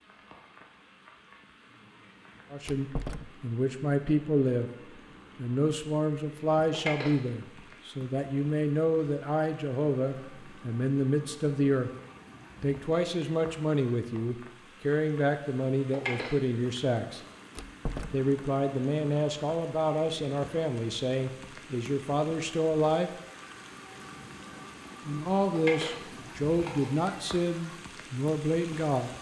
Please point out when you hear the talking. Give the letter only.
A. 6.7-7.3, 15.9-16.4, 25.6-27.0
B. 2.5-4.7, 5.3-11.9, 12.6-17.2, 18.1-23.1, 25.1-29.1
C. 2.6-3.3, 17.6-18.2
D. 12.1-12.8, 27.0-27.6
B.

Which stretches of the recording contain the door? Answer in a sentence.
You can hear the door from 2.6 to 3.3 s and from 17.6 to 18.2 s.